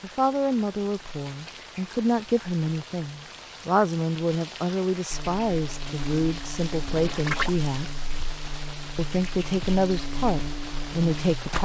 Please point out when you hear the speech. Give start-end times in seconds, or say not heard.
0.0-8.0, 8.9-11.6.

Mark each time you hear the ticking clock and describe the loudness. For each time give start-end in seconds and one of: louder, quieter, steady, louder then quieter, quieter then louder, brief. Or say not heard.
not heard.